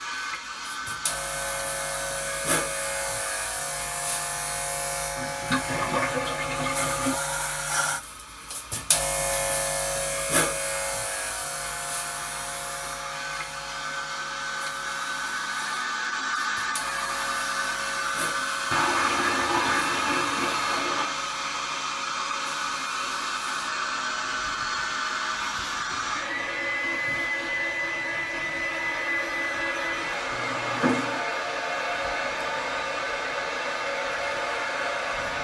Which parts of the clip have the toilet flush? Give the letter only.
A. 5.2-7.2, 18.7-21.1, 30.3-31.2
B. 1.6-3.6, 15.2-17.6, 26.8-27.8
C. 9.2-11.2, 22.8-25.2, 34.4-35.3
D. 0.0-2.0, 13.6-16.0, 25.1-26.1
A.